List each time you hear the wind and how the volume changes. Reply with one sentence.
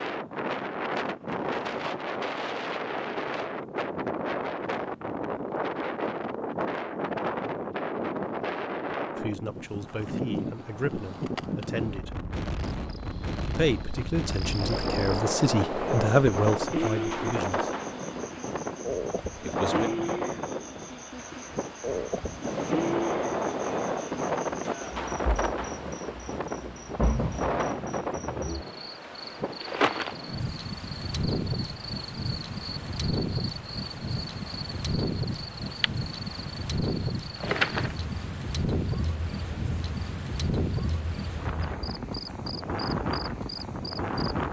The wind can be heard from 0.0 to 44.4 s, at a steady volume.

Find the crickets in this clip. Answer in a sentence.
The crickets can be heard from 12.7 to 44.4 s.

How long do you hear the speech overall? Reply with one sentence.
You can hear the speech for 8 seconds altogether.